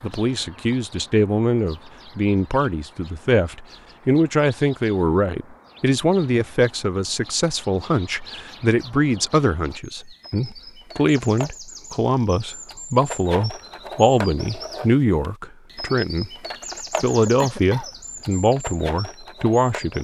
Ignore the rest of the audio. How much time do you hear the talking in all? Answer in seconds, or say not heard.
19 s.